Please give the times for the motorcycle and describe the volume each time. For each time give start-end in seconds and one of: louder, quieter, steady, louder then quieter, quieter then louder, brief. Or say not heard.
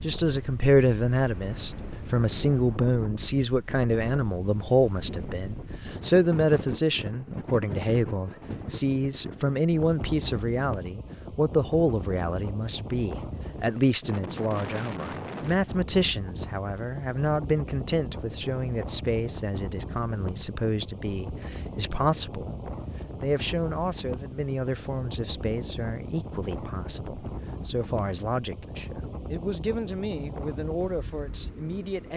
not heard.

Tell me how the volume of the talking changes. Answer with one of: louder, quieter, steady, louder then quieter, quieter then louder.
quieter.